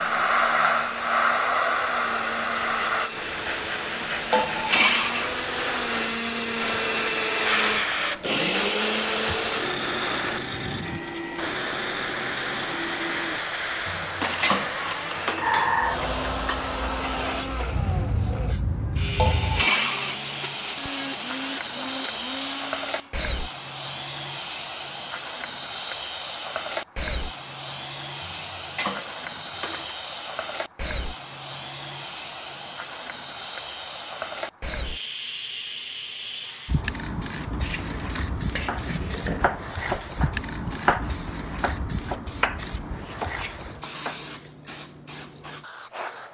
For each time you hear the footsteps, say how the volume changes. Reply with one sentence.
The footsteps can't be heard in this clip.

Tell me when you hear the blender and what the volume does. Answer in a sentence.
The blender can be heard from 0.0 to 23.1 s, getting louder then quieter.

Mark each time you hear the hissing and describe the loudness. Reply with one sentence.
The hissing can be heard from 0.0 to 46.2 s, getting quieter.